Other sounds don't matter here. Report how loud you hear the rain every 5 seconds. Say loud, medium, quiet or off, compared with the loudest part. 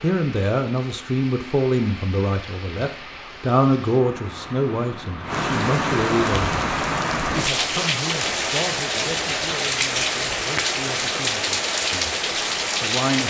quiet, loud, loud.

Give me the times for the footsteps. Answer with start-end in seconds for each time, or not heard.
not heard.